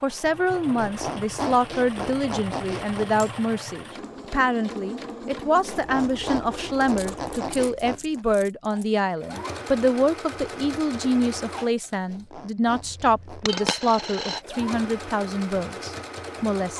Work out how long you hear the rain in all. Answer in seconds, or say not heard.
not heard.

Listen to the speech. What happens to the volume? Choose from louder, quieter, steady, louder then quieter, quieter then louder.
steady.